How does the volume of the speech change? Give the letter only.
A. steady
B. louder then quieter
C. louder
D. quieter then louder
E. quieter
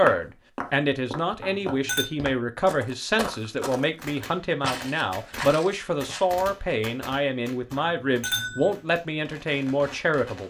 A.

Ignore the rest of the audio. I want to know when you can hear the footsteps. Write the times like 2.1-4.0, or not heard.
0.0-6.3.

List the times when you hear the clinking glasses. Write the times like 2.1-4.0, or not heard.
1.4-2.1, 8.0-8.8.